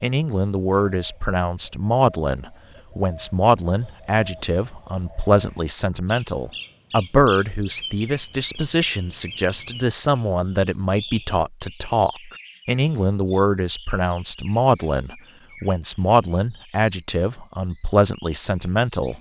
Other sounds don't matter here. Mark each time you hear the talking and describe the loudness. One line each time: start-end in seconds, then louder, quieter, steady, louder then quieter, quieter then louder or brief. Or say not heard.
0.0-19.1 steady.